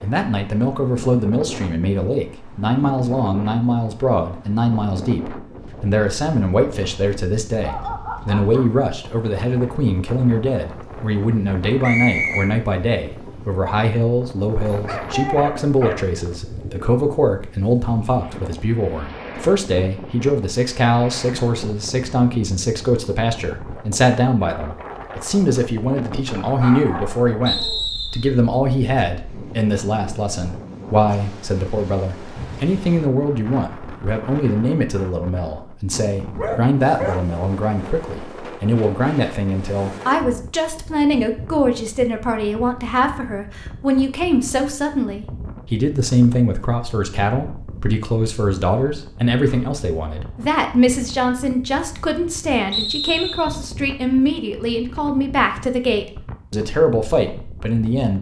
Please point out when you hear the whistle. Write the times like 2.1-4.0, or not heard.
11.8-12.5, 27.4-28.3, 52.7-53.5.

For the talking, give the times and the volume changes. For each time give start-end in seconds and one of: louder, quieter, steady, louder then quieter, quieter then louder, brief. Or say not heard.
0.0-58.1 steady.